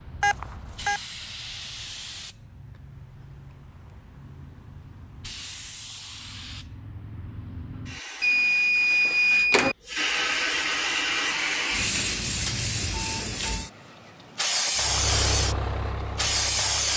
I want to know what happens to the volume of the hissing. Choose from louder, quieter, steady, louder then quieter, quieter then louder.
louder.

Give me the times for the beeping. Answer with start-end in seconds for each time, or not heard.
0.2-1.0, 8.2-9.8, 12.3-13.7.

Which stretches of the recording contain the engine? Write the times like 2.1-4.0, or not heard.
14.8-16.9.